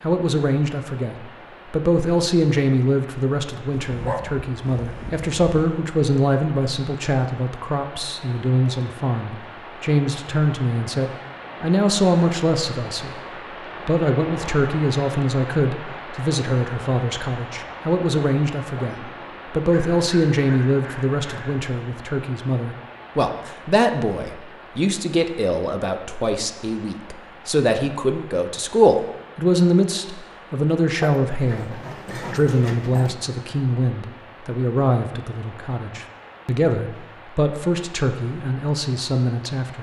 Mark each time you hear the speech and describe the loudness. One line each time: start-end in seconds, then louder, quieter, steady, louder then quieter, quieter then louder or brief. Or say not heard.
0.0-39.7 steady.